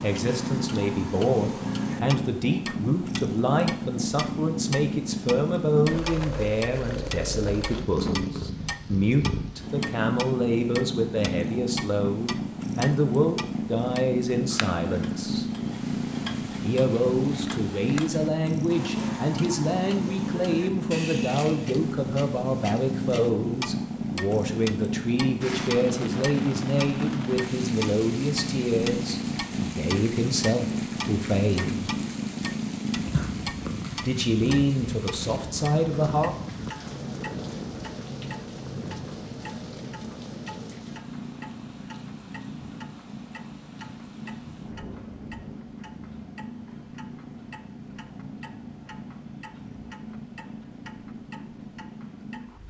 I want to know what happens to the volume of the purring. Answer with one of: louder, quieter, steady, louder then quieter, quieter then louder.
quieter.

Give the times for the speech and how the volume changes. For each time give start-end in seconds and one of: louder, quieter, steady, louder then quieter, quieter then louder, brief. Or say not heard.
0.0-15.4 steady
16.6-31.9 steady
34.0-36.4 brief.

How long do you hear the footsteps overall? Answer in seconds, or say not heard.
not heard.